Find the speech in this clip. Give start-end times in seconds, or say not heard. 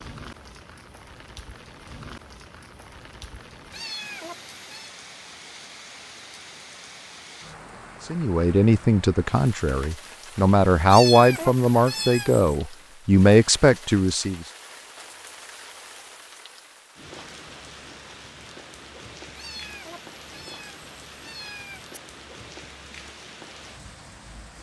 8.1-14.4.